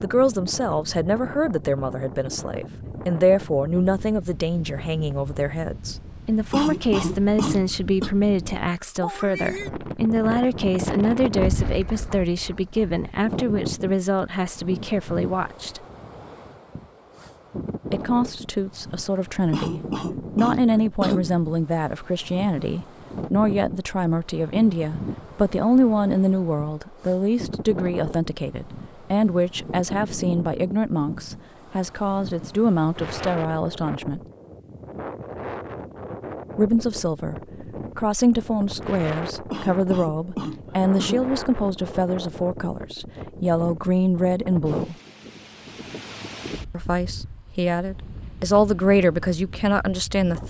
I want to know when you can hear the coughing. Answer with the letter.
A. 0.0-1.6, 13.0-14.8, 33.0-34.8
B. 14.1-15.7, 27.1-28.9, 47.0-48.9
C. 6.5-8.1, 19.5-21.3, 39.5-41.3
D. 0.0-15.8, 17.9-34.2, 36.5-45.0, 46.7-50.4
C.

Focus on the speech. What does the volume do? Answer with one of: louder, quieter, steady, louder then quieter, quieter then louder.
steady.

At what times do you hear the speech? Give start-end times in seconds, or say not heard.
0.0-15.8, 17.9-34.2, 36.5-45.0, 46.7-50.4.